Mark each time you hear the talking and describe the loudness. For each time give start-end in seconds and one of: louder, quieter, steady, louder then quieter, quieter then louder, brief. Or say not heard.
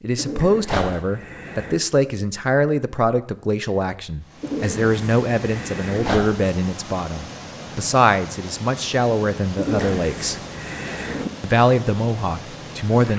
0.0-10.4 steady
11.4-13.1 brief.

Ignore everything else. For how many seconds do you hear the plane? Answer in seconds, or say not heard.
not heard.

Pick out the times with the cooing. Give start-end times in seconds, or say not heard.
0.1-1.8, 4.4-6.2, 9.6-11.3.